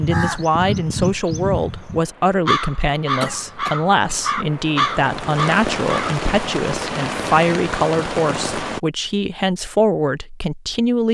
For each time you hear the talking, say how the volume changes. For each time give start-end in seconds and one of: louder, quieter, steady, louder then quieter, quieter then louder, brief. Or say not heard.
0.0-11.0 steady.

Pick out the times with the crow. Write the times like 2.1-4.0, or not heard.
0.0-6.2.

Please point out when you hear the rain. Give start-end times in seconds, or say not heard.
0.2-8.8.